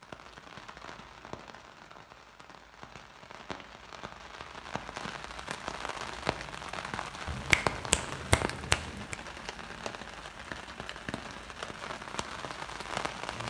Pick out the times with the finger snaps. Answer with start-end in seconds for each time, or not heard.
7.2-9.2.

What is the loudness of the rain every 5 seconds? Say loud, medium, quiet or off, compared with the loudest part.
medium, loud, loud.